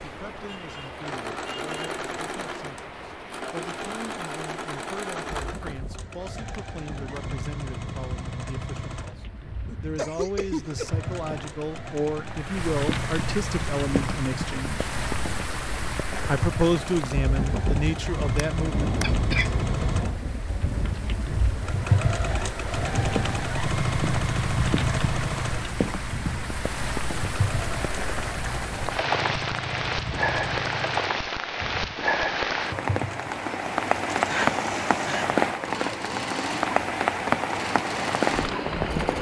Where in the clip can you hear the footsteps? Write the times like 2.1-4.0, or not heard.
not heard.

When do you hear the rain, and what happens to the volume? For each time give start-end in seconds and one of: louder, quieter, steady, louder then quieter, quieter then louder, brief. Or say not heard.
0.0-39.1 louder.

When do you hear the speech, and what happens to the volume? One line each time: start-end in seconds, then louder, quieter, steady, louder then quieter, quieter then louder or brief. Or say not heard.
0.0-14.8 louder
16.2-18.9 brief.